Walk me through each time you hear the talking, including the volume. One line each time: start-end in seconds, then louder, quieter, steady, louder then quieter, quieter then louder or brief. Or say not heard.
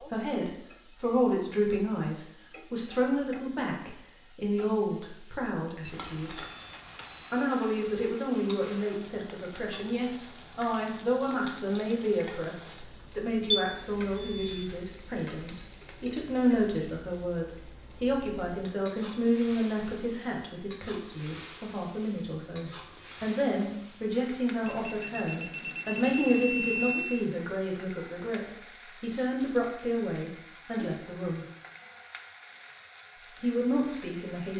0.0-6.5 quieter
7.3-31.4 steady
33.4-34.5 brief.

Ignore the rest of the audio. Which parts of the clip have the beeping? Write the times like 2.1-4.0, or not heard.
5.8-7.5, 13.5-14.7, 24.6-27.2.